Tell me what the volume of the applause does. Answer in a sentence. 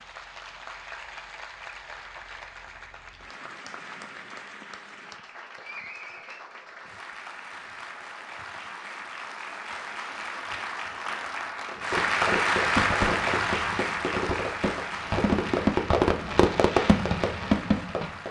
The volume of the applause goes up, then down.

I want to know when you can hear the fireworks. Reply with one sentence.
You can hear the fireworks from 11.8 to 18.2 s.